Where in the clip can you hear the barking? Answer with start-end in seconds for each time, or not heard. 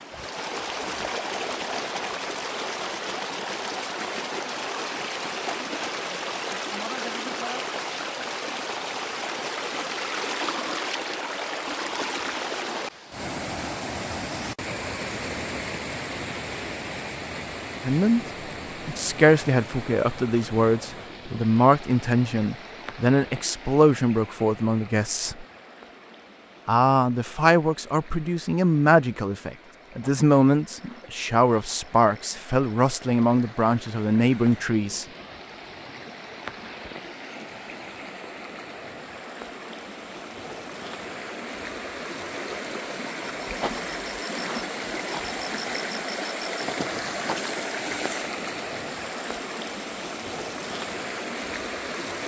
not heard.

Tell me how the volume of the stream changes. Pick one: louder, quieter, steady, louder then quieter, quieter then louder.
quieter then louder.